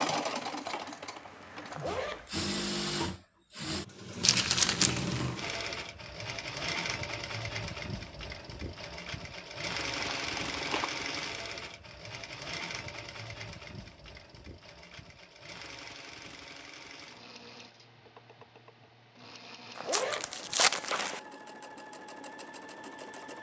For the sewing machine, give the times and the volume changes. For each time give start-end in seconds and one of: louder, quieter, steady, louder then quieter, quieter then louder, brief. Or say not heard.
0.0-23.3 quieter.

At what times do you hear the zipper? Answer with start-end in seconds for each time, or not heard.
1.7-2.4, 19.8-21.2.